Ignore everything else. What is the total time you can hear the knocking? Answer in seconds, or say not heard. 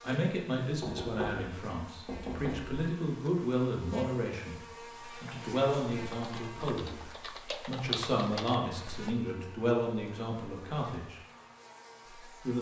2 s.